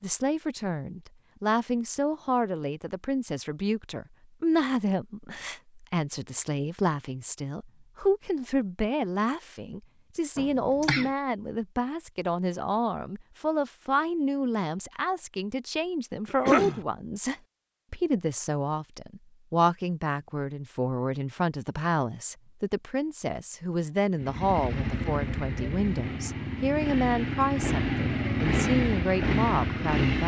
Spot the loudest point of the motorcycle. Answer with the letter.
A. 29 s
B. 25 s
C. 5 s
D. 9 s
A.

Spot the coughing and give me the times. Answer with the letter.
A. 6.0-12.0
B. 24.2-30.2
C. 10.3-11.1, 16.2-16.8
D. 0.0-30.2
C.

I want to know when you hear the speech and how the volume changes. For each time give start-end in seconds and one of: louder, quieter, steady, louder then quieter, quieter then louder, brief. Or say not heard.
0.0-30.2 steady.